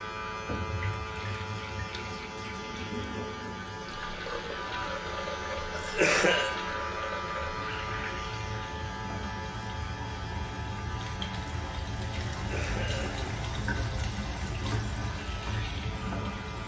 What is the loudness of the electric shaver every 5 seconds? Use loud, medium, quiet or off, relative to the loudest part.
loud, loud, medium, medium.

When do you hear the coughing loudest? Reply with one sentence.
The volume of the coughing peaks at 6 seconds.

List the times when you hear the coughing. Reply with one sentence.
The coughing can be heard from 5.7 to 6.5 s and from 12.3 to 13.4 s.